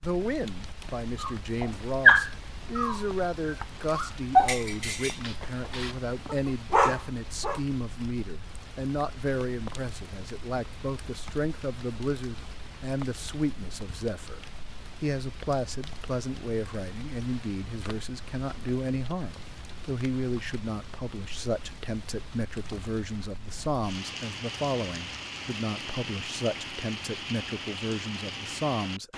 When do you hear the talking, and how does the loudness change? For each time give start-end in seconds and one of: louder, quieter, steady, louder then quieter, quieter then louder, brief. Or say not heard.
0.0-29.1 steady.